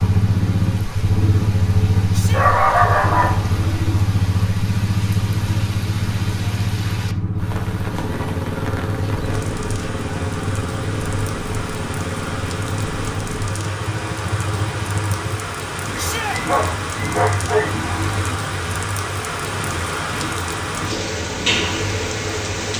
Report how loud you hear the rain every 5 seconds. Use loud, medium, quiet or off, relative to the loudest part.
quiet, medium, medium, loud, loud.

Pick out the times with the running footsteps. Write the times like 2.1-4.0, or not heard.
not heard.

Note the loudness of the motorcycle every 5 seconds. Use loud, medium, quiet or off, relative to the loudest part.
loud, loud, medium, medium, medium.